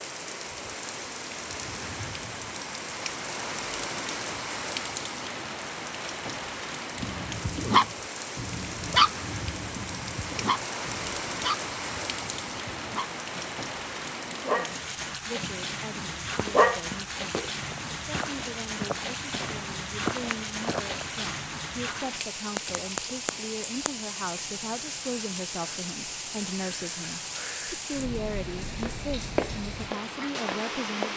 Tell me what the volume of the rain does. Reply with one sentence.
The volume of the rain stays about the same.